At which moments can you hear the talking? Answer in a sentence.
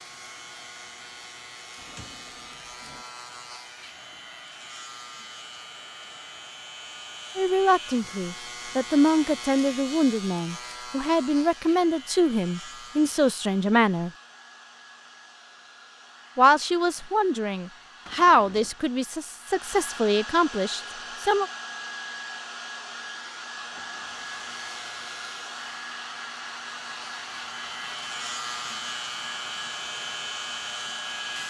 The talking can be heard from 7.3 to 14.1 s and from 16.4 to 21.5 s.